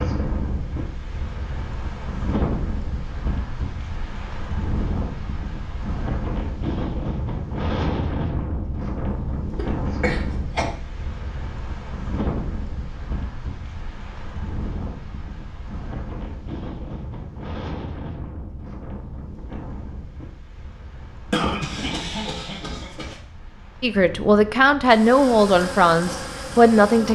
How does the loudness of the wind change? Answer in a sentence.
The loudness of the wind goes down.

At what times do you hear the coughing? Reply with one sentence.
You can hear the coughing from 9.6 to 10.7 s and from 21.3 to 23.2 s.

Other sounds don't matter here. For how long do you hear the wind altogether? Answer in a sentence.
The wind can be heard for 27 seconds in total.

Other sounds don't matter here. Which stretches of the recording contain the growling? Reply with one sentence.
The growling can't be heard in this clip.